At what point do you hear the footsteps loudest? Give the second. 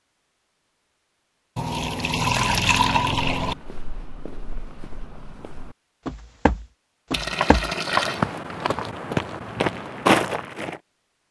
10 s.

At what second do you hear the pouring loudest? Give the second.
3 s.